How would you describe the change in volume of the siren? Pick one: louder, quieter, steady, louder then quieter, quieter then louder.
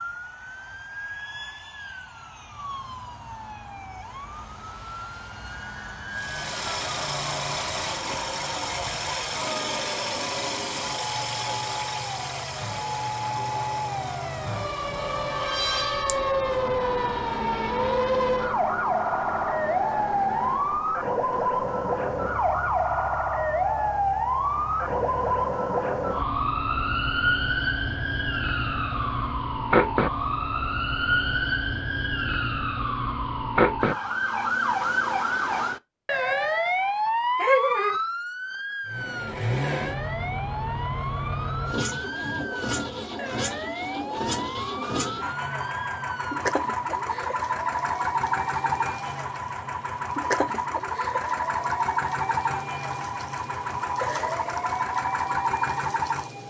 louder then quieter.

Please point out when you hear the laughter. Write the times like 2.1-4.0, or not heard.
37.4-38.0.